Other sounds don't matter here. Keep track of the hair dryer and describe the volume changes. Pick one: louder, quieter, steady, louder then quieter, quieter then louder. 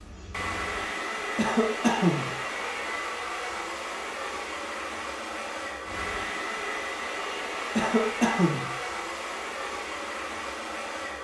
steady.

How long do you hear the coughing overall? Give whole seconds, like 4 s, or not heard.
2 s.